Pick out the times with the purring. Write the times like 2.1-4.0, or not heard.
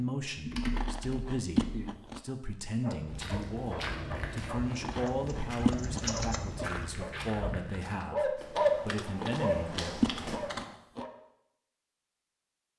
not heard.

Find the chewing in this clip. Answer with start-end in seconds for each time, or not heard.
0.6-2.2, 4.7-6.8, 9.1-11.1.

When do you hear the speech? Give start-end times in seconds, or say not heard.
0.0-9.9.